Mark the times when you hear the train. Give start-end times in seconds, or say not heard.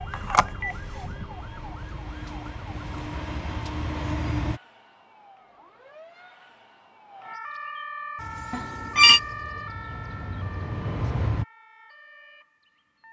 0.0-4.6, 8.2-11.4.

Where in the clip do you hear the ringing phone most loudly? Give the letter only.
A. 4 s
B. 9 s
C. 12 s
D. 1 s
B.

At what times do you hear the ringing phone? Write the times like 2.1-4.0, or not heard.
0.1-0.8, 8.5-9.2.